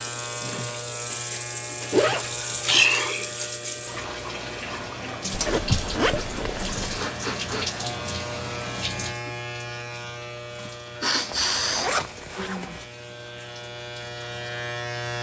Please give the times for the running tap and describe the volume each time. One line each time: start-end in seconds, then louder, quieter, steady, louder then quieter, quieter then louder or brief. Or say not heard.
0.0-15.1 quieter.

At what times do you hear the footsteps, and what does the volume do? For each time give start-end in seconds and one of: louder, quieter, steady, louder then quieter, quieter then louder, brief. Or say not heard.
not heard.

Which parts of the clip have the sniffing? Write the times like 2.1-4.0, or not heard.
2.4-3.3, 6.0-7.7, 10.6-12.8.